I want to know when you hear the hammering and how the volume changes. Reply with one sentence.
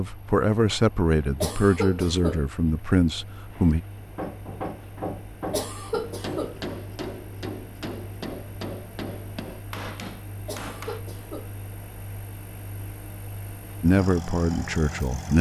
You can hear the hammering from 4.0 to 11.1 s, at a steady volume.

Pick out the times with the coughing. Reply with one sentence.
You can hear the coughing from 1.4 to 2.5 s, from 5.5 to 6.7 s and from 10.4 to 11.6 s.